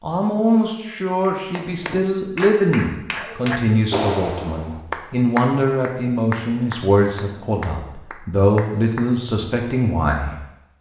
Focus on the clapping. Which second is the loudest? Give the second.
4 s.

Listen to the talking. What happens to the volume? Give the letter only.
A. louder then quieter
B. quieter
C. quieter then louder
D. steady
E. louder
D.